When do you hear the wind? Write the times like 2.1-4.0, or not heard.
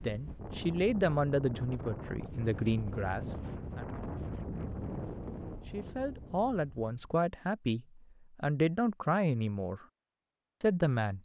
0.0-7.2.